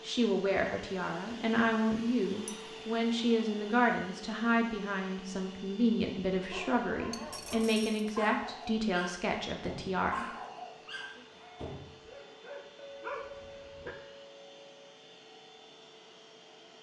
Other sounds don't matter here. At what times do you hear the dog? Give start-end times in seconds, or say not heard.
6.3-13.9.